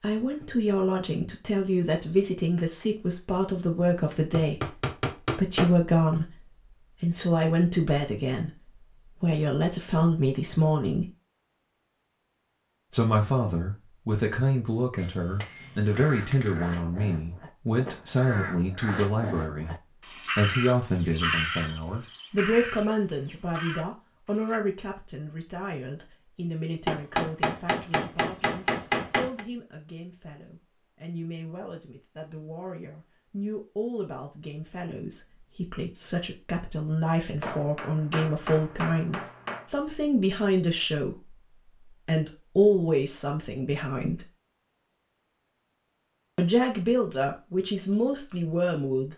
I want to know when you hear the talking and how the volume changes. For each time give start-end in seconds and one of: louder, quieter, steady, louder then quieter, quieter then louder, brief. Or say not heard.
0.0-11.1 steady
12.9-19.8 steady
20.4-44.2 quieter then louder
46.4-49.1 brief.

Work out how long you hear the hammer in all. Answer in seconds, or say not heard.
8 s.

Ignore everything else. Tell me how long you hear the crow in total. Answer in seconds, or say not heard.
9 s.